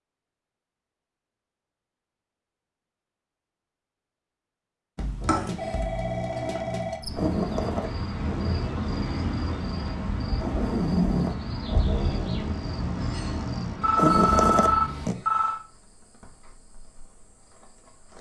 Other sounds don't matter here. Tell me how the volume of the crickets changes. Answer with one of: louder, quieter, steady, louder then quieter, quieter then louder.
quieter.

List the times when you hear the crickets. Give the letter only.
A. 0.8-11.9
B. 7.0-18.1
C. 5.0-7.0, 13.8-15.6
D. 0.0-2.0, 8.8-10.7
B.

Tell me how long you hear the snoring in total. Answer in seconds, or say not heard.
10 s.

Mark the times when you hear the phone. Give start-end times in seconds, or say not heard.
5.0-7.0, 13.8-15.6.